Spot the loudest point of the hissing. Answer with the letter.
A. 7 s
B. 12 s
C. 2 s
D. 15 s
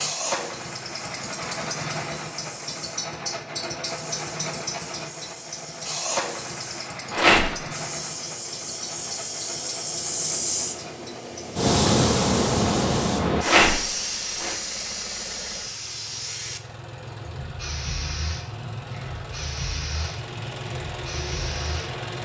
B.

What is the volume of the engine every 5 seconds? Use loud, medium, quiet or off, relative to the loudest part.
loud, loud, medium, medium, loud.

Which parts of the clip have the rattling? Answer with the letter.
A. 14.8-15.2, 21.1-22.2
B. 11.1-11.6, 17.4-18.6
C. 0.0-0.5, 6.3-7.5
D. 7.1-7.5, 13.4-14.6
D.